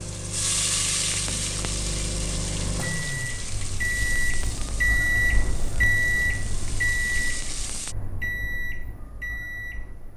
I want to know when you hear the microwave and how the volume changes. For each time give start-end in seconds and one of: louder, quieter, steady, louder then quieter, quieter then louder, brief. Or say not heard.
0.0-10.1 louder then quieter.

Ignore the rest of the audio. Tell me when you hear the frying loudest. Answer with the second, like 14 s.
1 s.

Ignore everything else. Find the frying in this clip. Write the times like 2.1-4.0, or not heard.
0.0-8.0.